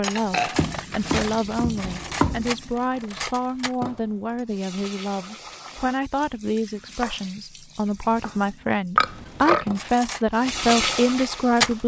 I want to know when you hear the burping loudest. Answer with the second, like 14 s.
9 s.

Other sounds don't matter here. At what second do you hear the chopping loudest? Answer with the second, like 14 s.
2 s.